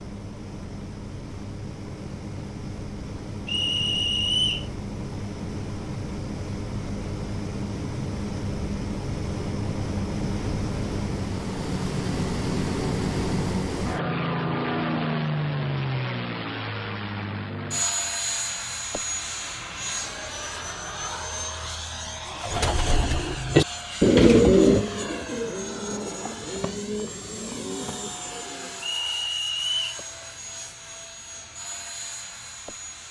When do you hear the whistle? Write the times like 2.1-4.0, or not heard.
3.5-4.7, 28.9-30.0.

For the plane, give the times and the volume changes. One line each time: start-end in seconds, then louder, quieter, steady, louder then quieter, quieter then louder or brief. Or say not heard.
0.0-33.0 louder then quieter.